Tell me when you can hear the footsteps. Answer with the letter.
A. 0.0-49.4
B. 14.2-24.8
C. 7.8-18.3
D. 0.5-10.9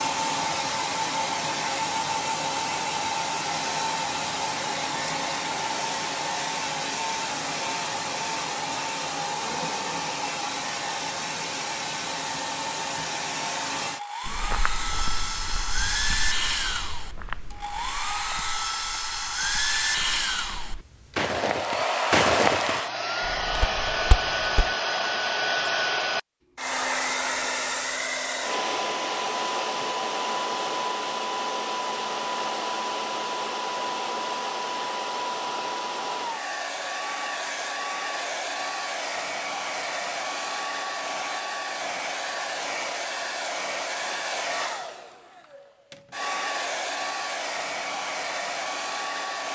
B.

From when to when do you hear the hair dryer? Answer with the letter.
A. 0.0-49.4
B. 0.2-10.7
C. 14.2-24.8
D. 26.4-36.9
A.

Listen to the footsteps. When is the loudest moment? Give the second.
22 s.